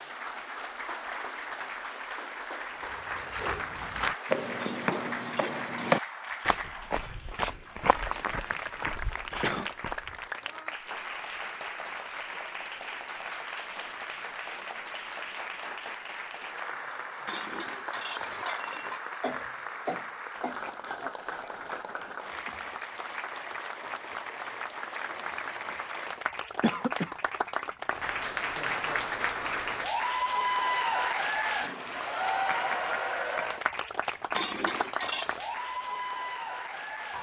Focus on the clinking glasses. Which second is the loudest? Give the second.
35 s.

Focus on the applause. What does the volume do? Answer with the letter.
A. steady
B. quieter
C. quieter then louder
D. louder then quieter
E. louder
E.